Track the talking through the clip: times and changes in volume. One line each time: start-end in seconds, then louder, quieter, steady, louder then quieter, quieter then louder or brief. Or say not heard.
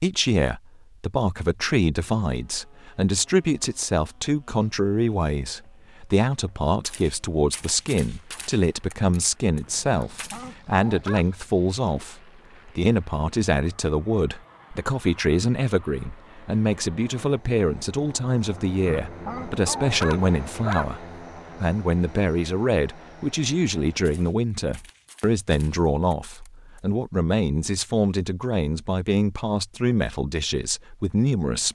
0.0-31.6 steady.